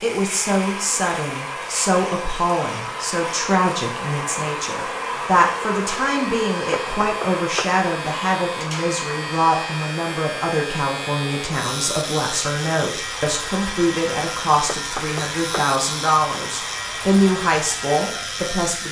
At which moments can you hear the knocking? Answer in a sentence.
You can hear the knocking from 6.8 to 7.8 s and from 14.7 to 15.7 s.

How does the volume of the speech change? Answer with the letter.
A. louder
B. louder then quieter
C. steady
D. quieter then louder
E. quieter
C.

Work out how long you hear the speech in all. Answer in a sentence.
The speech can be heard for 19 seconds in total.